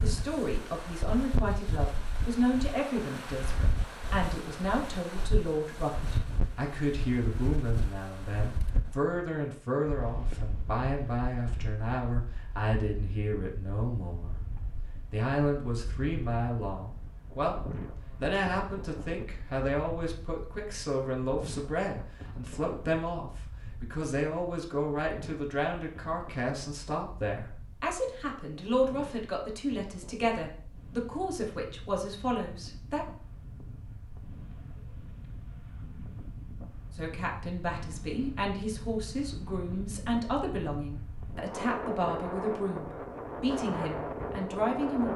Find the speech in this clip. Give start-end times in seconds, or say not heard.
0.0-33.0, 37.0-45.1.